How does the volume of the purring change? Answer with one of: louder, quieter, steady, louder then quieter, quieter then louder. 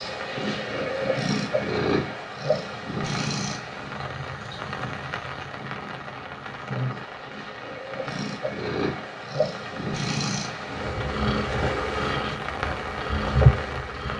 quieter then louder.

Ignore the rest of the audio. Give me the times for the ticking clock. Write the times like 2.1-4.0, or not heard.
not heard.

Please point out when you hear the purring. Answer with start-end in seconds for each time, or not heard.
0.0-14.1.